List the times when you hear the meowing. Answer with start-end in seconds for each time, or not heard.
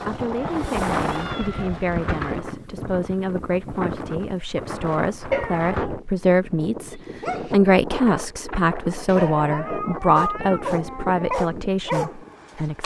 0.4-2.4, 5.3-5.9, 9.1-11.3.